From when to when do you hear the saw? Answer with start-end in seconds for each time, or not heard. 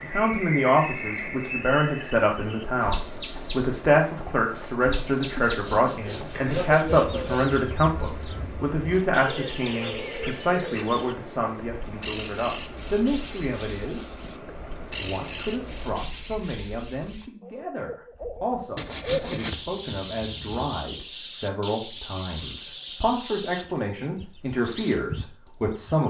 5.3-7.8, 18.8-20.6.